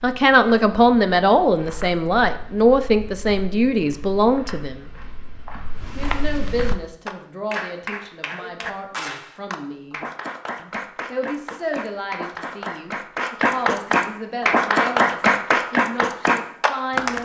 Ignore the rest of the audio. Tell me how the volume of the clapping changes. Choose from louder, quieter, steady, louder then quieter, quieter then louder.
louder.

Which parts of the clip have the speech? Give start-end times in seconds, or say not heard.
0.0-5.0, 6.0-10.0, 10.6-17.1.